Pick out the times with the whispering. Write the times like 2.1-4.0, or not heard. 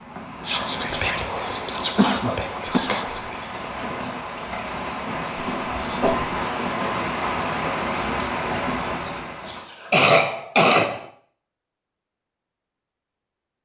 0.5-10.1.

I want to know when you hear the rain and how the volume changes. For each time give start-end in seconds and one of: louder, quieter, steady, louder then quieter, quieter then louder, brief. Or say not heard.
0.0-9.7 louder.